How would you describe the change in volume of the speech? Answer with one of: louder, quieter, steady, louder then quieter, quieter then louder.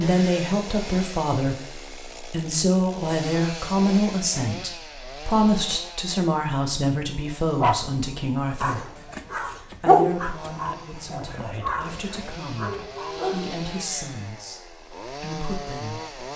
quieter.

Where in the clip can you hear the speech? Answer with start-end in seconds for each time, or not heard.
0.0-16.3.